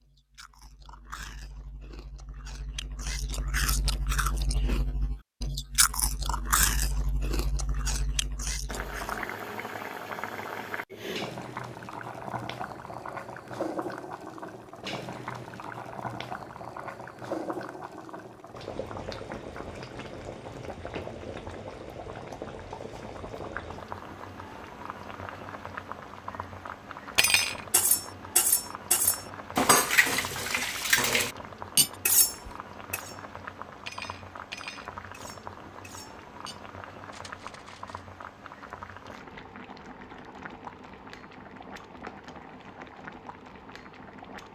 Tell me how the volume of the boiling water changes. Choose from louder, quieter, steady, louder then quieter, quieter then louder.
quieter.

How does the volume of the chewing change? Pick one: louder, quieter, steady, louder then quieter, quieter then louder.
louder then quieter.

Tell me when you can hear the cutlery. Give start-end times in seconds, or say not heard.
27.1-38.0.